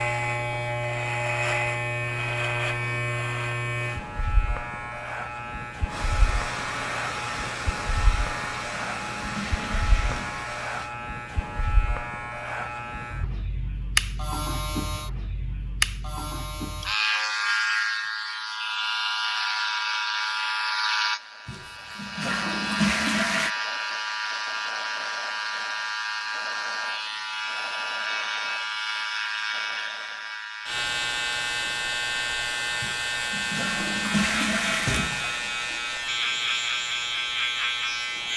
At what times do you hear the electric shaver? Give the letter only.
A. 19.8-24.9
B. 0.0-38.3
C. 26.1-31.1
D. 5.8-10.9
B.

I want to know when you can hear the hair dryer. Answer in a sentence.
You can hear the hair dryer from 5.8 to 10.9 s.